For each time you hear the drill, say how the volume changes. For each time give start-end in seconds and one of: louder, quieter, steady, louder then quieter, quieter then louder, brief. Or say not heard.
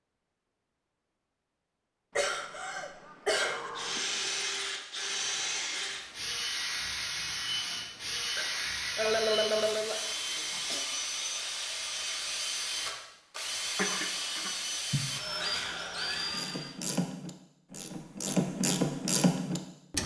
3.8-16.8 steady.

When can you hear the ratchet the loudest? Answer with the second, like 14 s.
19 s.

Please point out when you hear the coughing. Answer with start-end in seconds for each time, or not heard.
2.1-4.0, 8.3-10.8, 13.8-15.1.